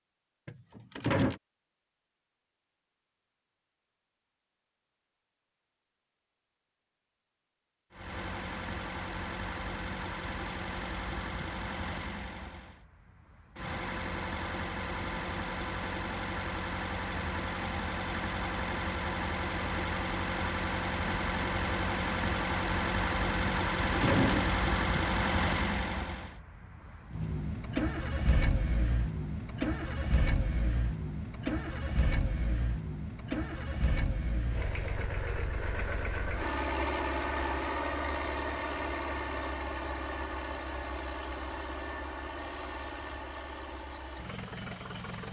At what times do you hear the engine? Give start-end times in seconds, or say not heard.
7.9-45.2.